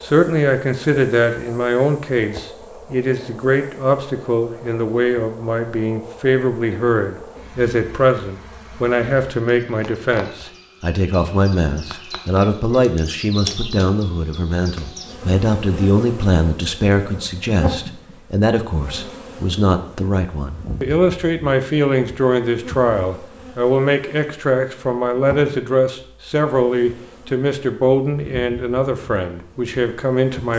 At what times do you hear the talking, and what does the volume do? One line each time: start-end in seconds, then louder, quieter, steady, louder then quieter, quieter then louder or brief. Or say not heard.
0.0-30.5 steady.